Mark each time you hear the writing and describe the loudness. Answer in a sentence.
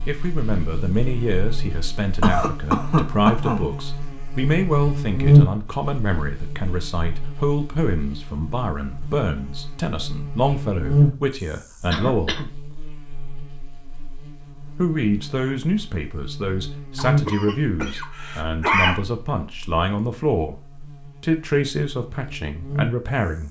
You can't hear the writing here.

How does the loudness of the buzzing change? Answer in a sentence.
The loudness of the buzzing goes up, then down.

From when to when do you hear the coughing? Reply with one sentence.
You can hear the coughing from 2.2 to 3.6 s, from 11.9 to 12.5 s and from 16.9 to 19.0 s.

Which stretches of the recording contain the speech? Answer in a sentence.
You can hear the speech from 0.1 to 12.4 s, from 14.8 to 20.6 s and from 21.2 to 23.4 s.